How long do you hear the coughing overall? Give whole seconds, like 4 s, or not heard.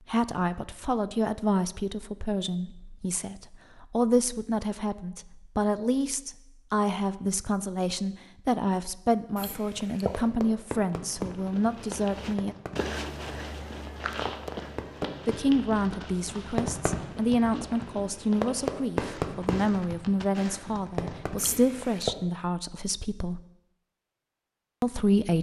2 s.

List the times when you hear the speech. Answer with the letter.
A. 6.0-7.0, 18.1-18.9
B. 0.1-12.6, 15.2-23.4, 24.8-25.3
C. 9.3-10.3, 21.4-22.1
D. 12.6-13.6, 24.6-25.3
B.